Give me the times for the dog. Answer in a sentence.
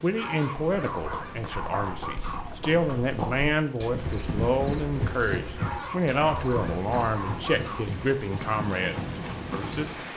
You can hear the dog from 0.1 to 2.5 s and from 5.5 to 7.8 s.